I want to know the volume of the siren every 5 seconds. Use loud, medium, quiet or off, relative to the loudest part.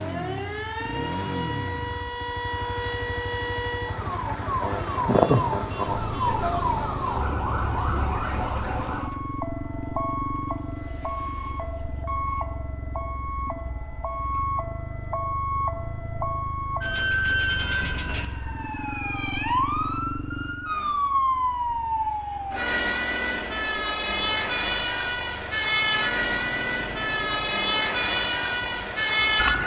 medium, loud, medium, loud, loud, loud.